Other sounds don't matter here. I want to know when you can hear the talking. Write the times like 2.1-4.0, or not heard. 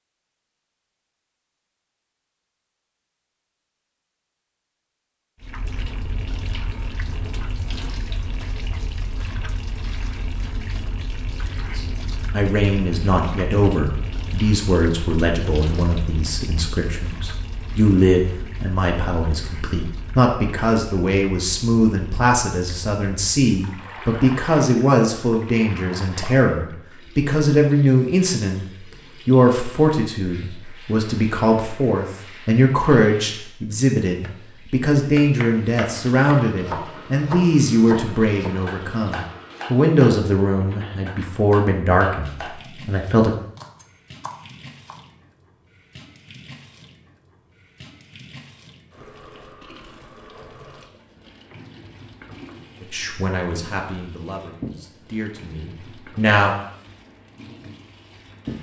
11.8-43.3, 52.8-56.5.